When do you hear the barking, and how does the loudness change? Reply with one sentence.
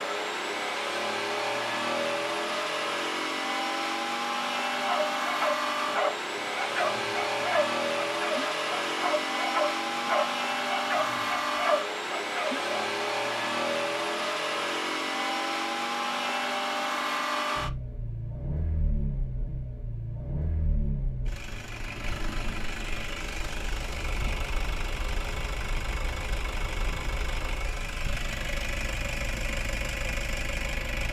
You can hear the barking from 4.8 to 12.9 s, at a steady volume.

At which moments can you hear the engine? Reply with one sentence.
You can hear the engine from 0.0 to 31.0 s.